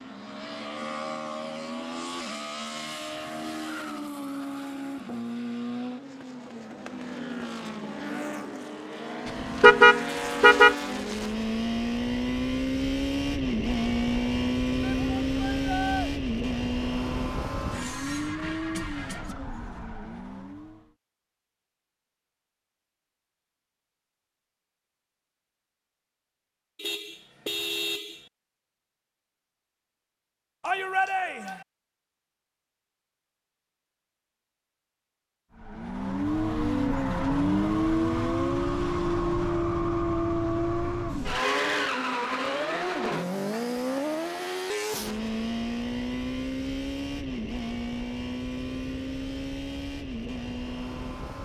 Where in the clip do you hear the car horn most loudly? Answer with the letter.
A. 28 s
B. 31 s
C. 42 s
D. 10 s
D.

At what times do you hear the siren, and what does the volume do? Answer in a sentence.
You can't hear the siren here.